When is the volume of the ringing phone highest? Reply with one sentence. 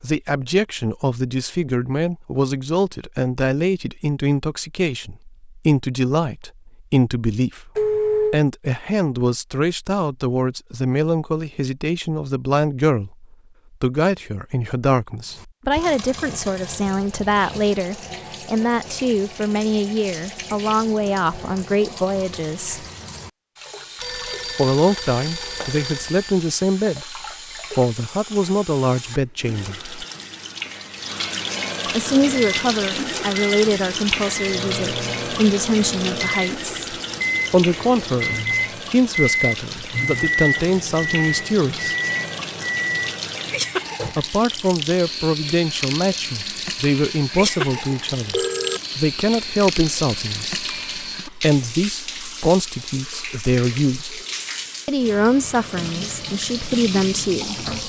The volume of the ringing phone peaks at 8 seconds.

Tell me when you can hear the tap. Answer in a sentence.
The tap can be heard from 15.2 to 57.8 s.